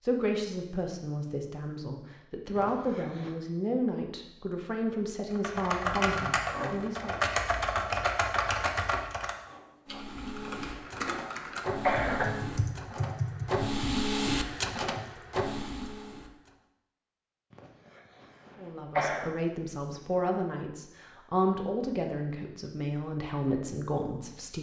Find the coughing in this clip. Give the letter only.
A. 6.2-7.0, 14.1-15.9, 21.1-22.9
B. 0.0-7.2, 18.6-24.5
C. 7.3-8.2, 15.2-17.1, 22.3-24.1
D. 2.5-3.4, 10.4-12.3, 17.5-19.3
D.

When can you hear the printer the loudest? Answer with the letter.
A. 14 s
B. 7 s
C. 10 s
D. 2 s
A.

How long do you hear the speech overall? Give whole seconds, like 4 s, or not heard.
13 s.